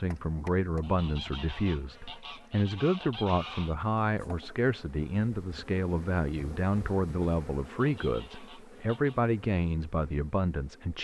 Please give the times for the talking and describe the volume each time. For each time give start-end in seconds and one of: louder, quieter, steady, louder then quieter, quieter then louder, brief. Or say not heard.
0.0-10.9 steady.